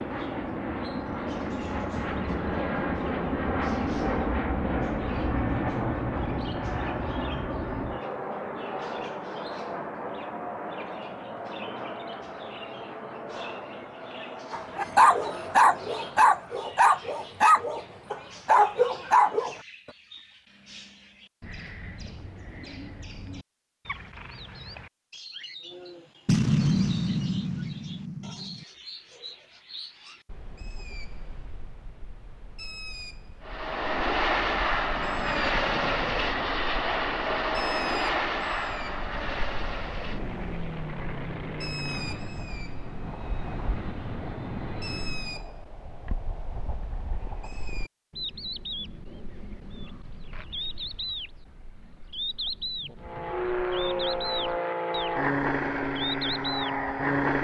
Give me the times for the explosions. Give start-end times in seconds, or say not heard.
26.2-28.6.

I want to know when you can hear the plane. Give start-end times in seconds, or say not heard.
0.0-16.4, 33.4-45.5, 53.0-57.3.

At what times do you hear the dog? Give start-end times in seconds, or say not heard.
14.5-19.6.